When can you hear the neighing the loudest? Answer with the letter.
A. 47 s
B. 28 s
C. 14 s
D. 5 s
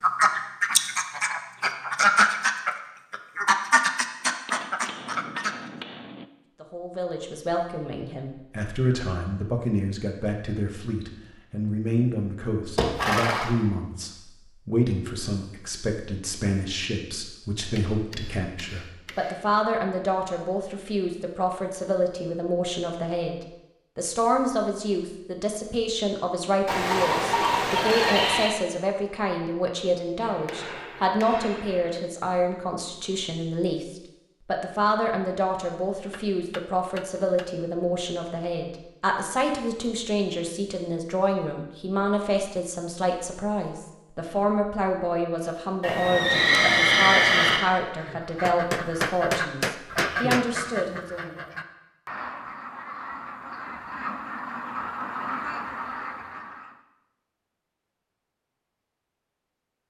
A.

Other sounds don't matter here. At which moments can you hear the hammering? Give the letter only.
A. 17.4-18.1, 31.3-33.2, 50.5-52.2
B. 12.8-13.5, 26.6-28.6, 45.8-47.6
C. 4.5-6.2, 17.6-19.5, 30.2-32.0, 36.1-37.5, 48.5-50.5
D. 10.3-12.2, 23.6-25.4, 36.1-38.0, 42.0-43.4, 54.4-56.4
C.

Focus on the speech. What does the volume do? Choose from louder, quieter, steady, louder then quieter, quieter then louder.
steady.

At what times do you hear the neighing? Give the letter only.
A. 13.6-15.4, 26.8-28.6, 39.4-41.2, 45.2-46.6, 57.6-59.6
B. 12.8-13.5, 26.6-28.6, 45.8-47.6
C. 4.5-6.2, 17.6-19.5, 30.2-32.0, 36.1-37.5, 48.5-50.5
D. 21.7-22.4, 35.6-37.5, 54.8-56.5
B.